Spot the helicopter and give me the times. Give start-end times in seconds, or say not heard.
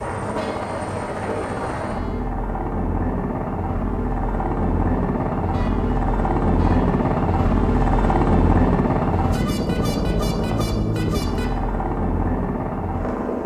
0.0-13.4.